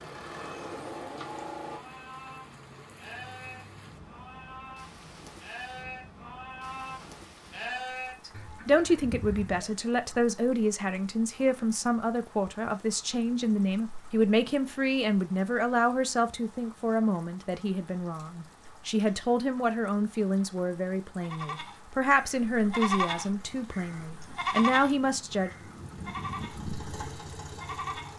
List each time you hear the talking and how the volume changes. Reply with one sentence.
The talking can be heard from 8.2 to 25.5 s, at a steady volume.